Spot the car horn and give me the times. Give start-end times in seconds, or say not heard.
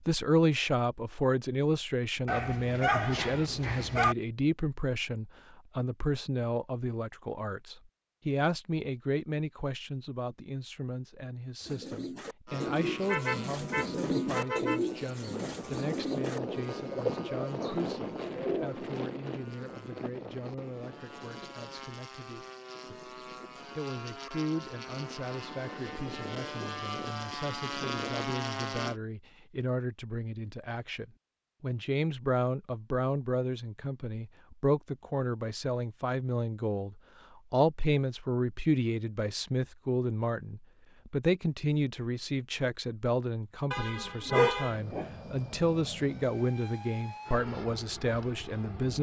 13.0-14.8, 43.7-44.8.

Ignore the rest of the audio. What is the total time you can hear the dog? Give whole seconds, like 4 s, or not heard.
3 s.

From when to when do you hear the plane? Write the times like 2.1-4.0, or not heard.
12.4-29.0, 44.6-48.9.